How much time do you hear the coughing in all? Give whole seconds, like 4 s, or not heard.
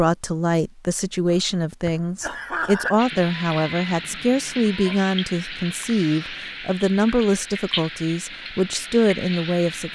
2 s.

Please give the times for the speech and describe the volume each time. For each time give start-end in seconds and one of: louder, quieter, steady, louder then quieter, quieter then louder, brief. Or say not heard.
0.0-9.9 steady.